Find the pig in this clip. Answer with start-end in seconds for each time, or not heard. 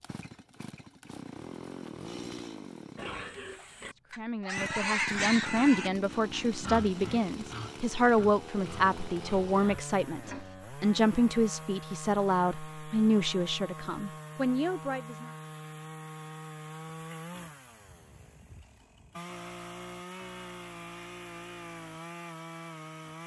3.0-10.6.